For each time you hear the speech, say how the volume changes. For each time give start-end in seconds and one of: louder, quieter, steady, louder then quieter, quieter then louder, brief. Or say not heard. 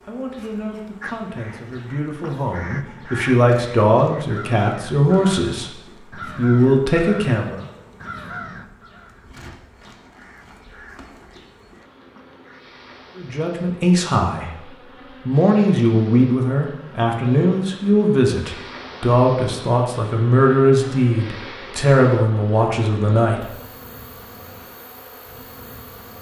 0.1-7.7 louder
13.2-23.4 steady.